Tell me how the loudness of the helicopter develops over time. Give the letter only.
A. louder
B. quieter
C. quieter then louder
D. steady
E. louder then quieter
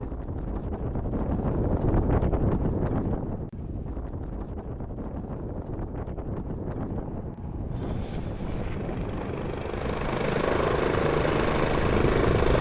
A.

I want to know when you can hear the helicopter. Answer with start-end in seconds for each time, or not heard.
7.0-12.5.